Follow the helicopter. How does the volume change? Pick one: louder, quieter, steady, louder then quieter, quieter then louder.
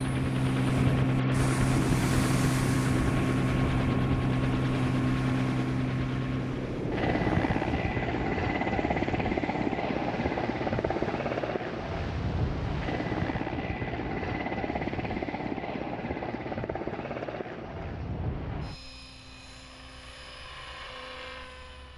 quieter.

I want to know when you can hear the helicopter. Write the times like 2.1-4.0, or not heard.
0.0-21.9.